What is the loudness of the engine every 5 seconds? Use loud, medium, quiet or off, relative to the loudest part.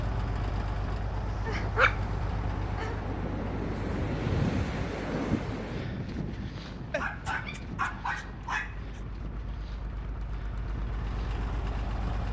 loud, medium, loud.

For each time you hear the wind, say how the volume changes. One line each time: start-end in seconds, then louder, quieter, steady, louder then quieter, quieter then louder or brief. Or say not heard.
0.0-12.2 louder then quieter.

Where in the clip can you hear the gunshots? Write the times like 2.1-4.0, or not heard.
not heard.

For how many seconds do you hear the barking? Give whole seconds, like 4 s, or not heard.
4 s.